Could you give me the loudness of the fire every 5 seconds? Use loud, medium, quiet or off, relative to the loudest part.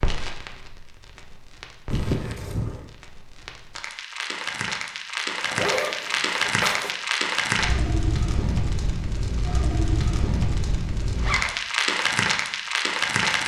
medium, loud, loud.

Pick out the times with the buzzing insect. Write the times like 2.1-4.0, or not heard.
not heard.